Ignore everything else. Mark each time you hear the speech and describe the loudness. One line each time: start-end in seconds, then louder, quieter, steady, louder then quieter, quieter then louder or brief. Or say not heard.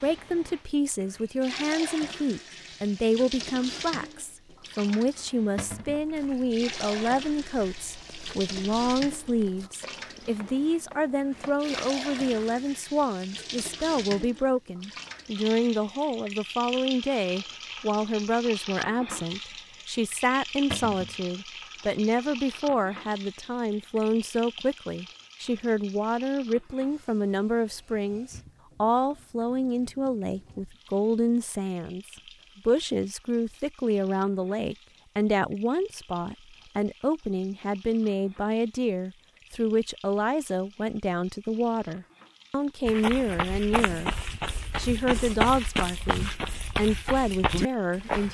0.0-48.2 steady.